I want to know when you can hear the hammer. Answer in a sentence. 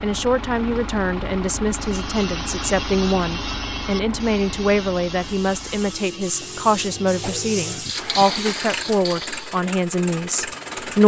The hammer can't be heard in this clip.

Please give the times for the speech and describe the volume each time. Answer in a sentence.
You can hear the speech from 0.0 to 11.0 s, at a steady volume.